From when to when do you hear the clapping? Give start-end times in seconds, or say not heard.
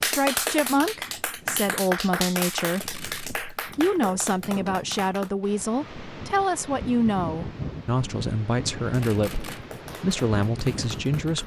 0.0-5.3, 8.8-11.4.